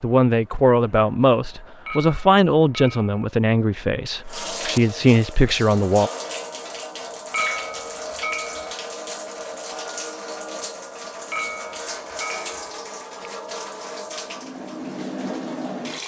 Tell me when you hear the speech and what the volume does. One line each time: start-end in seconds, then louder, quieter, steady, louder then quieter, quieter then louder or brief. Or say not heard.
0.0-6.1 quieter then louder.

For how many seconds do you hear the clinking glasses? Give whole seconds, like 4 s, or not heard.
4 s.